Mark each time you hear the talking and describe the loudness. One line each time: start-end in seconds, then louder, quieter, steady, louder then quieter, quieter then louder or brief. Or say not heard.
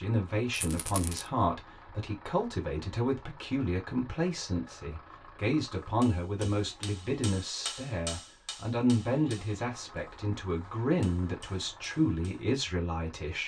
0.0-13.4 steady.